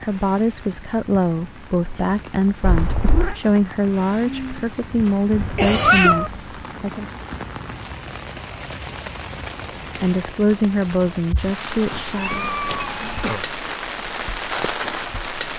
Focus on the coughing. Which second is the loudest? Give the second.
6 s.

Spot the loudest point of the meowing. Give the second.
6 s.